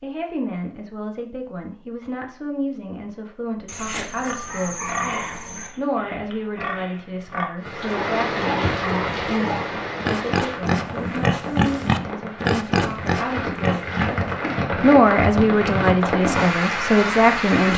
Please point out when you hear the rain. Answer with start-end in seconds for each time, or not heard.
7.6-17.7.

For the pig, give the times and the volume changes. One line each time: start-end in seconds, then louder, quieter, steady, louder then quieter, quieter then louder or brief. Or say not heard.
4.0-14.4 louder.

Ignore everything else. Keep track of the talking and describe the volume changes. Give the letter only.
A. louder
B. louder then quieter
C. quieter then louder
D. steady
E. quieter
A.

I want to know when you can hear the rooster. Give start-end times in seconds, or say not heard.
3.6-5.7.